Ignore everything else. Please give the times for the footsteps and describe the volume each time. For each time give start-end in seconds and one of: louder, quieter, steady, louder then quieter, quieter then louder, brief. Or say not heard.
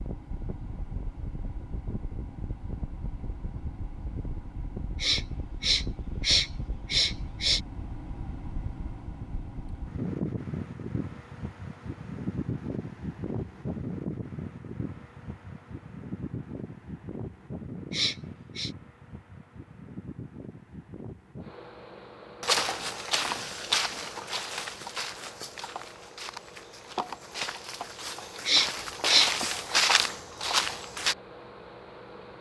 22.4-31.1 quieter then louder.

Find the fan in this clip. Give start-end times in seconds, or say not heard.
0.0-32.3.